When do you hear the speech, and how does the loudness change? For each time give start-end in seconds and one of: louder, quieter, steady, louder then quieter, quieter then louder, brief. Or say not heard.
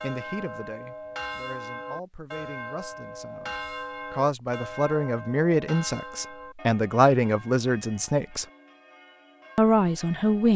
0.0-8.4 louder
9.6-10.5 brief.